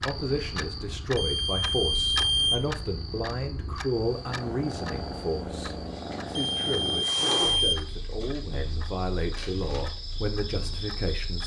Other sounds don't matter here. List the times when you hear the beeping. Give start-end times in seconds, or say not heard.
1.1-2.6, 6.3-7.8.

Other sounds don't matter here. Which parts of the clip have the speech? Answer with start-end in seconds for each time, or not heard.
0.0-11.4.